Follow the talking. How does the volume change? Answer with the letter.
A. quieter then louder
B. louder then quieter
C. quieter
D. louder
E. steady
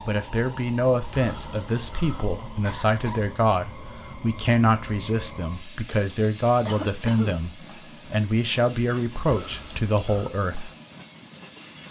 E.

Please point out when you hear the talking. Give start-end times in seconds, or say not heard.
0.1-10.7.